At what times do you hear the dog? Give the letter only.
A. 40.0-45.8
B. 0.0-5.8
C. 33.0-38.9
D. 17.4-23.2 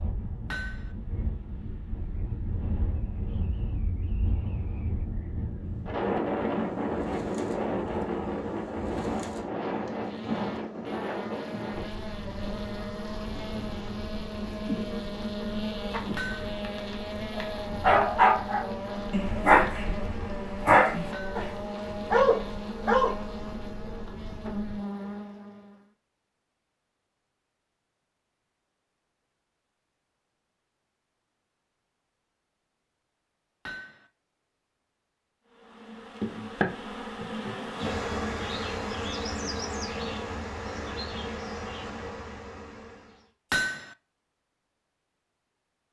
D.